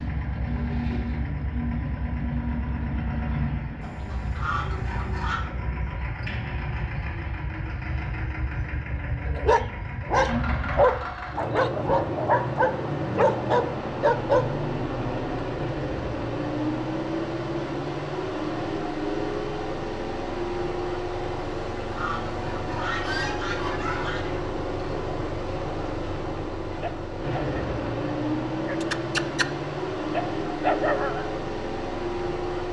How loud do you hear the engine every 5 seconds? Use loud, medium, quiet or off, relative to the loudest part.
loud, medium, loud, loud, loud, loud, loud.